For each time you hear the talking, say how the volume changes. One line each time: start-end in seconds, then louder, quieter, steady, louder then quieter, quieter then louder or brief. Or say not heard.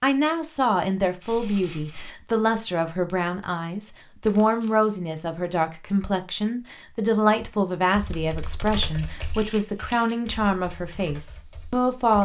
0.0-12.1 steady.